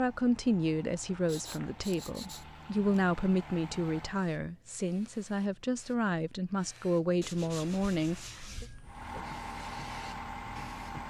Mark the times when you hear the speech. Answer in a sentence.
You can hear the speech from 0.0 to 8.7 s.